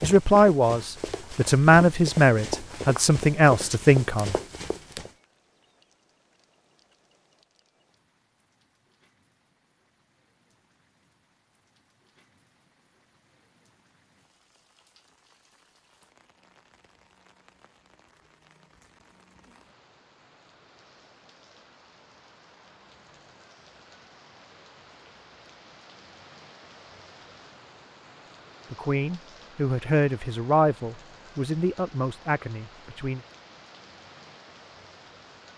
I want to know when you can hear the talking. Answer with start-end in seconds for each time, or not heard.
0.0-4.3, 28.7-33.2.